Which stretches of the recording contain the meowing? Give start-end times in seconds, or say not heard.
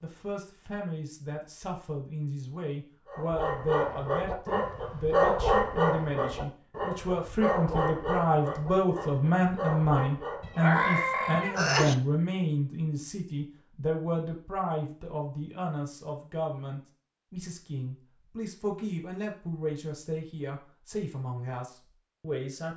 10.4-11.9.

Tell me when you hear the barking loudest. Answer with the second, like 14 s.
5 s.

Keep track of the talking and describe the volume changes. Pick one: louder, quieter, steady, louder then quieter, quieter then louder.
louder then quieter.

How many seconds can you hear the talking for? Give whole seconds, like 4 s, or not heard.
23 s.